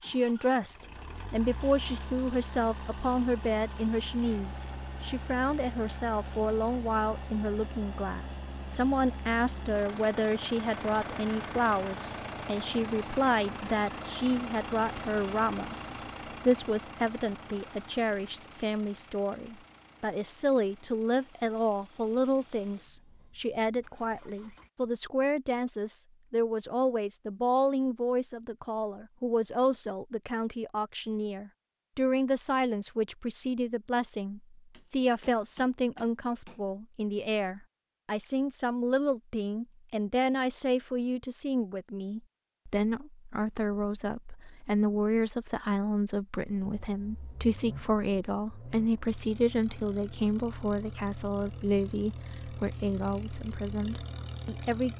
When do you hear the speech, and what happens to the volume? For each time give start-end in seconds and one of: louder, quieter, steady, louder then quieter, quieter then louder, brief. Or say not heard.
0.0-54.9 steady.